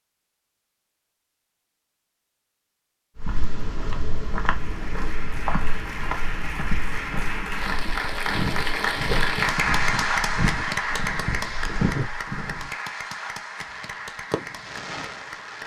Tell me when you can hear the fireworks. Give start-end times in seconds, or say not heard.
13.6-15.6.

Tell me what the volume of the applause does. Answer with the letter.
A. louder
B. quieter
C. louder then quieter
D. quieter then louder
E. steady
C.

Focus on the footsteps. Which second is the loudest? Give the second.
12 s.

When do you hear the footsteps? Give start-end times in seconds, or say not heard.
3.1-12.7.